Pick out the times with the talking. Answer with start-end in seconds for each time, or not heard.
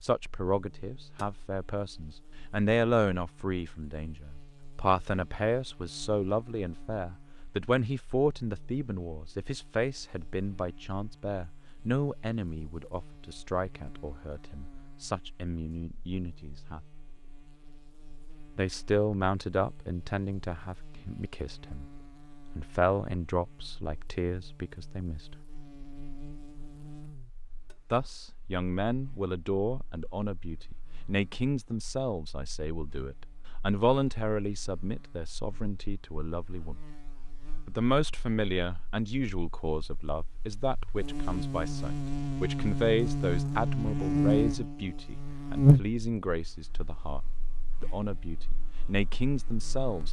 0.0-16.8, 18.6-21.9, 22.6-25.4, 27.9-36.8, 37.6-47.2, 47.8-50.0.